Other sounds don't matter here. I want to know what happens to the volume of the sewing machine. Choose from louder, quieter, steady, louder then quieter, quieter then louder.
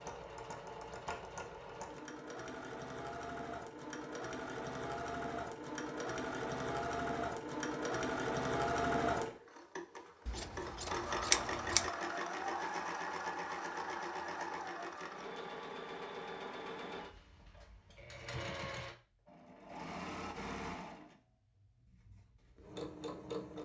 louder then quieter.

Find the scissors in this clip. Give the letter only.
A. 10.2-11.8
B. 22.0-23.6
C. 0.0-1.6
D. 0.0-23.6
A.